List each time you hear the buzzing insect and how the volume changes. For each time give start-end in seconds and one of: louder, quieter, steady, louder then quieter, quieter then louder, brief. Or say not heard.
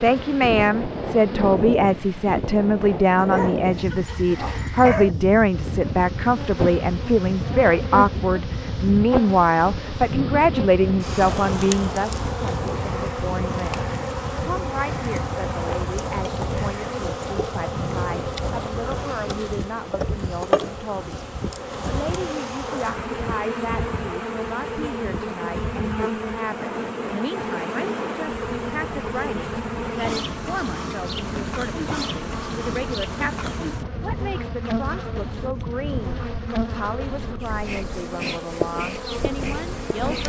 0.0-1.6 brief
5.5-40.2 steady.